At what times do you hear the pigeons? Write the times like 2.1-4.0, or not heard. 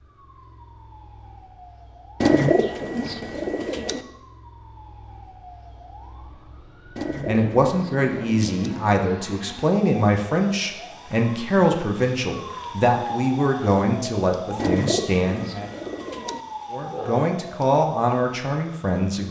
2.2-4.0, 7.0-8.6, 14.6-16.4.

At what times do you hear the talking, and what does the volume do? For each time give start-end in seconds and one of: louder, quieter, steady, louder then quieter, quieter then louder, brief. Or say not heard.
7.2-15.7 steady
16.7-19.2 brief.